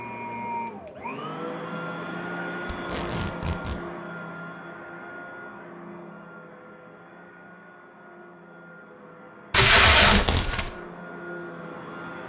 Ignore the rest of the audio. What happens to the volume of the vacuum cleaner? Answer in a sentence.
The volume of the vacuum cleaner goes down, then up.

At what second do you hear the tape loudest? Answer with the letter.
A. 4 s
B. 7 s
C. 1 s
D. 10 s
D.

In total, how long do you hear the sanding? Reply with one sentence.
You can't hear the sanding here.